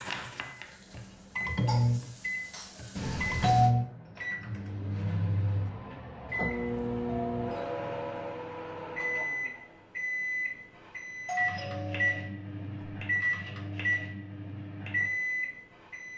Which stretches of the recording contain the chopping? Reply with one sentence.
You can hear the chopping from 0.0 to 1.6 s.